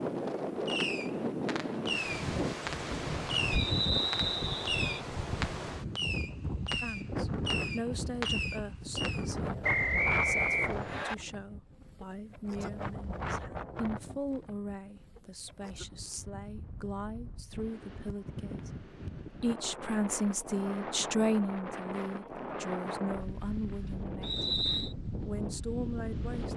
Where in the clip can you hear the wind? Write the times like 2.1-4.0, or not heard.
0.0-26.5.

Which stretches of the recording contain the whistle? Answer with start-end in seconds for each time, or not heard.
3.5-5.0, 9.6-11.2, 24.2-24.9.